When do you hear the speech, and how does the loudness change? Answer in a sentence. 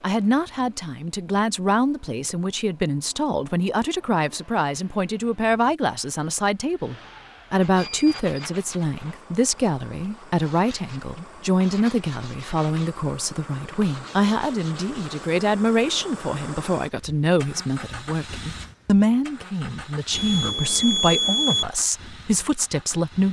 The speech can be heard from 0.0 to 23.2 s, at a steady volume.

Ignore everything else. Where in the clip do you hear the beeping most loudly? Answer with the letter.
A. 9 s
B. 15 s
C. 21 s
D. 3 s
C.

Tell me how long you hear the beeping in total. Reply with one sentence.
The beeping can be heard for 2 seconds in total.